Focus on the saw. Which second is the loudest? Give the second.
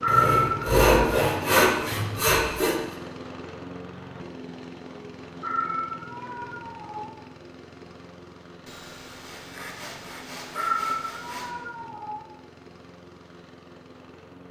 1 s.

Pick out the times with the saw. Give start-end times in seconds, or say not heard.
0.1-2.8, 8.7-11.6.